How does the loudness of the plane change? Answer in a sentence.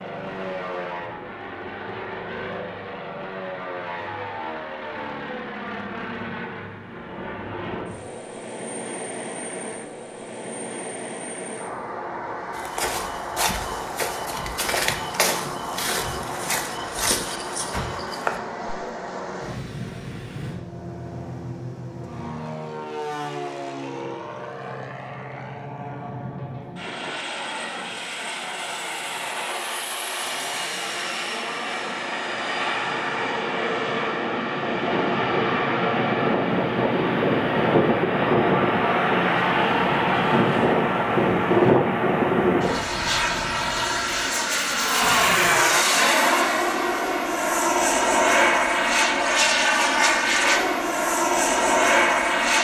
The loudness of the plane goes up.